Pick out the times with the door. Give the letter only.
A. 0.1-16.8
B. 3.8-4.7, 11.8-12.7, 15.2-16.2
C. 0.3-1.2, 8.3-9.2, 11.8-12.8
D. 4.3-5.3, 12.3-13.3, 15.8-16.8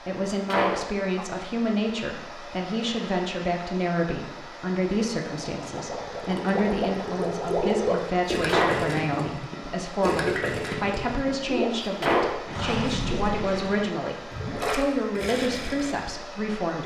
C.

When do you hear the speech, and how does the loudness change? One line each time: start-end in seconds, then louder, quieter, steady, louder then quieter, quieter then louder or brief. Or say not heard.
0.1-16.8 steady.